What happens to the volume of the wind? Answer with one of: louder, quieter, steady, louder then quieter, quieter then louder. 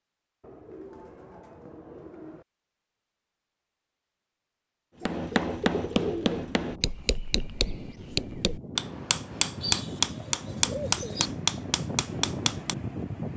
louder.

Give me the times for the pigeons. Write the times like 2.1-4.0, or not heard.
0.4-2.5, 5.0-6.4, 9.6-11.3.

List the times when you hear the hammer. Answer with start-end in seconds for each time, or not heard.
5.0-12.8.